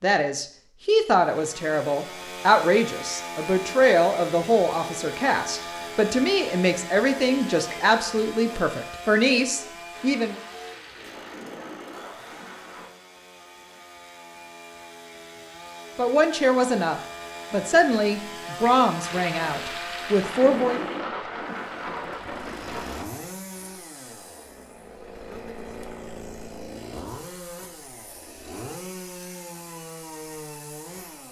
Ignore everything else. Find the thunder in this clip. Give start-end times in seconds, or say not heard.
9.9-12.9, 19.0-23.1.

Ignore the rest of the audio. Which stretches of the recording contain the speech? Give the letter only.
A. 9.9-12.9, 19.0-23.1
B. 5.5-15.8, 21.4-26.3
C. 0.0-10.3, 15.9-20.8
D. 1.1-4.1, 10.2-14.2
C.